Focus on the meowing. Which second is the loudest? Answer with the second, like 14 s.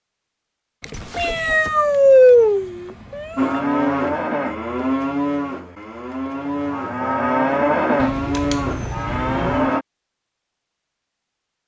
2 s.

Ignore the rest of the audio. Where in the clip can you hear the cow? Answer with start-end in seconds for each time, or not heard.
3.4-9.8.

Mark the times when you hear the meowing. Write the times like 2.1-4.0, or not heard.
0.8-3.6, 8.0-9.7.